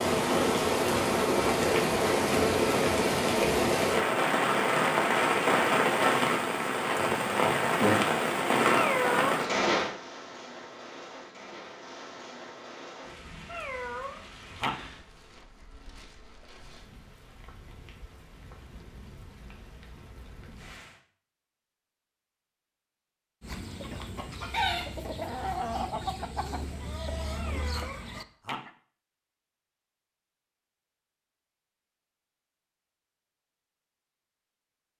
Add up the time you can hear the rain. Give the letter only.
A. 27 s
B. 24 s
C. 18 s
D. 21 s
D.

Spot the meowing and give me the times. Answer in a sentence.
You can hear the meowing from 8.7 to 9.3 s, from 13.5 to 14.7 s and from 27.4 to 28.6 s.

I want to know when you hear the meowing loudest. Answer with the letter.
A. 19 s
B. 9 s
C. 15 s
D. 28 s
B.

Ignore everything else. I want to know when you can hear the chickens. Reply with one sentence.
You can hear the chickens from 23.4 to 28.7 s.